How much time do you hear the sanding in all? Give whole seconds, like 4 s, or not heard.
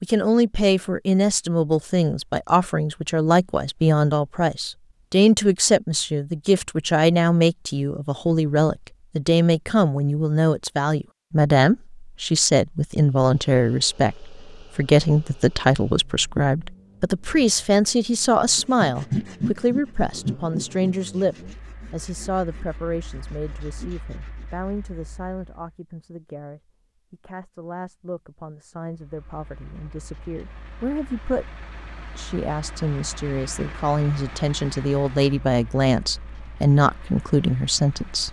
6 s.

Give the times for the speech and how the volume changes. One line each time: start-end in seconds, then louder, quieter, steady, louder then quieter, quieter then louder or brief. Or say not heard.
0.0-31.5 quieter
32.1-38.2 louder.